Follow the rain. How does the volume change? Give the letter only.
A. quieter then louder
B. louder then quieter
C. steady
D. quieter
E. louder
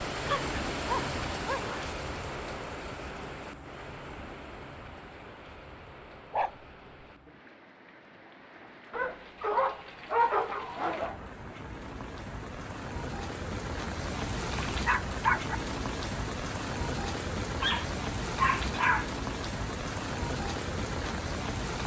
A.